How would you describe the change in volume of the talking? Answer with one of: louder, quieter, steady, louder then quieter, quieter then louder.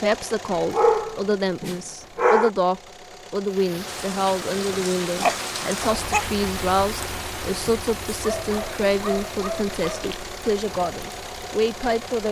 steady.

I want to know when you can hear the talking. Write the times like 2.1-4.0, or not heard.
0.0-12.2.